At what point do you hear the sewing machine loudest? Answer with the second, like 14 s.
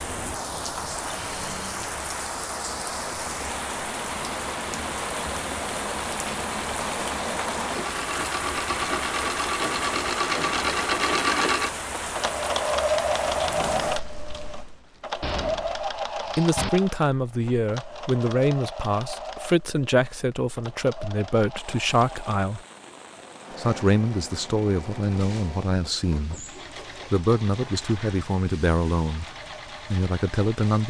11 s.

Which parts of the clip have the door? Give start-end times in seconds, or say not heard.
15.2-16.7.